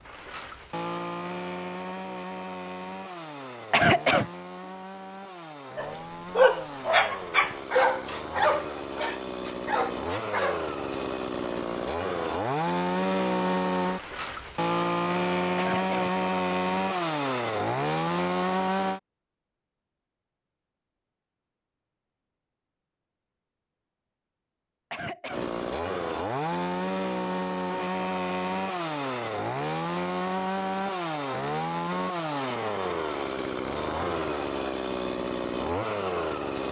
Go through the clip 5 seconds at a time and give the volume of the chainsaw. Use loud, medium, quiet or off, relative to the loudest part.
medium, medium, loud, loud, off, loud, loud, loud.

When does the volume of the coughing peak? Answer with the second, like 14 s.
4 s.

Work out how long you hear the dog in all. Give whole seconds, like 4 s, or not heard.
5 s.